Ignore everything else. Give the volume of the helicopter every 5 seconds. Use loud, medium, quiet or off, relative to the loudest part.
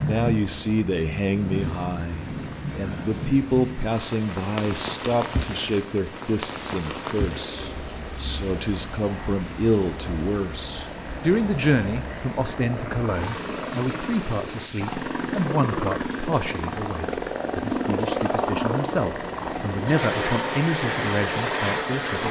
quiet, quiet, medium, loud, loud.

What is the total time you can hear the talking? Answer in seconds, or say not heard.
22 s.